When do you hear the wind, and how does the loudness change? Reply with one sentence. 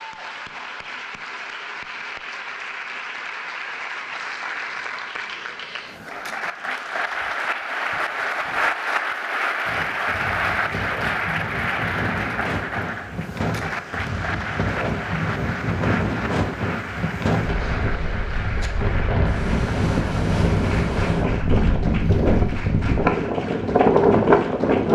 You can hear the wind from 9.7 to 24.9 s, getting louder.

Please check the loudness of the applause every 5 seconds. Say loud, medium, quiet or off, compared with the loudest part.
medium, loud, loud, medium, medium.